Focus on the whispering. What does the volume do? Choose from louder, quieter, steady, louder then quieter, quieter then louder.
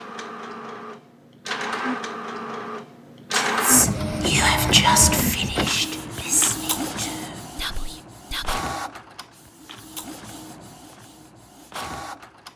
quieter.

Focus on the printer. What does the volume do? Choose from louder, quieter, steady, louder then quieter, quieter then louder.
louder then quieter.